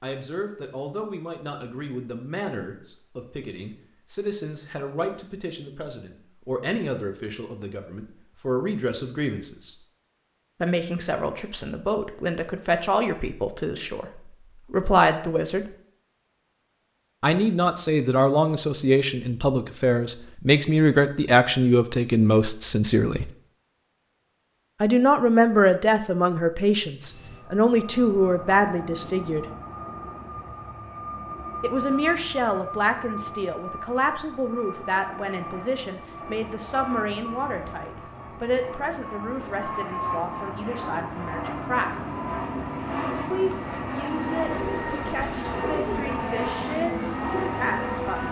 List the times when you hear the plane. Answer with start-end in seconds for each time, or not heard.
27.0-48.2.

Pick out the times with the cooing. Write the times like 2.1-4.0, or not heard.
44.5-48.2.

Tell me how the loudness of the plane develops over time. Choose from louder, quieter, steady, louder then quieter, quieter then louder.
louder.